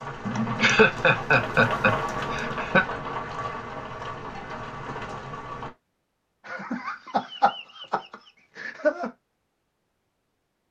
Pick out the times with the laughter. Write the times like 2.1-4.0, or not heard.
0.2-2.9, 6.5-9.1.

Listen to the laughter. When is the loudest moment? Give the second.
1 s.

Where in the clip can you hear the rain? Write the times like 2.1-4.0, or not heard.
0.0-5.7.